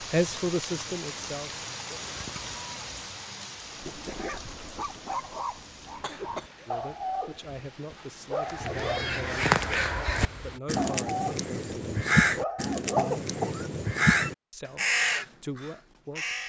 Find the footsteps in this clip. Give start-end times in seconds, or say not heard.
not heard.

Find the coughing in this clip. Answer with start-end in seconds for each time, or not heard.
1.9-2.6, 6.0-6.7, 12.9-13.7.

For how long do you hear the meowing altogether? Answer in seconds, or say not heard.
3 s.